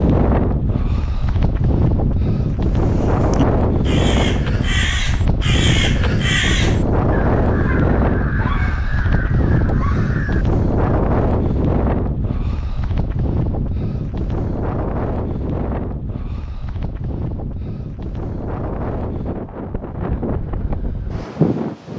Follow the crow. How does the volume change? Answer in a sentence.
The loudness of the crow goes down.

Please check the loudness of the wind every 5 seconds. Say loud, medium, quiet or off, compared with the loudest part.
loud, loud, loud, medium, loud.